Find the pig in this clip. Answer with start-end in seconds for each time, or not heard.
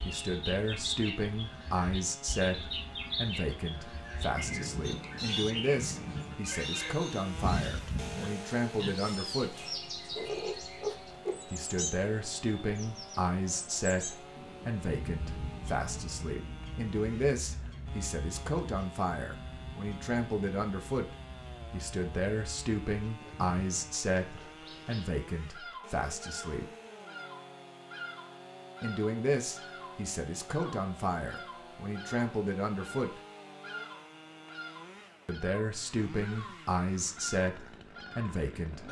4.8-11.3.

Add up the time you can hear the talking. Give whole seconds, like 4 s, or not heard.
33 s.